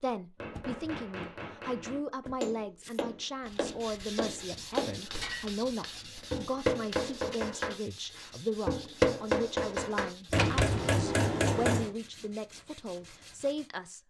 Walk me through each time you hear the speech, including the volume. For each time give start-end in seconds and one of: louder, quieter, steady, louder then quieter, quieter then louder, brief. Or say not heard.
0.0-14.0 steady.